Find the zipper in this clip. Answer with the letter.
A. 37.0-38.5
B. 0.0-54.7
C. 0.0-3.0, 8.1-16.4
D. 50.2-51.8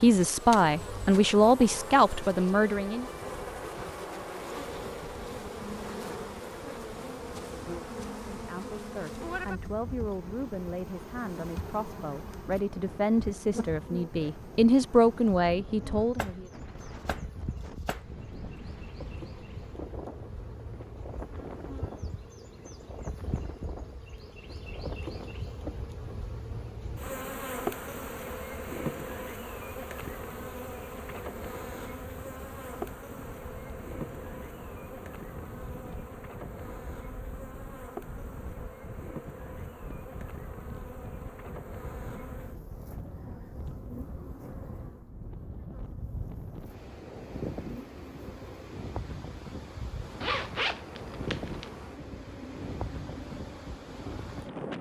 D.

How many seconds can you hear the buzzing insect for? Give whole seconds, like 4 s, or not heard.
55 s.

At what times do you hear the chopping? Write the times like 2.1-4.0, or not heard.
16.1-18.0.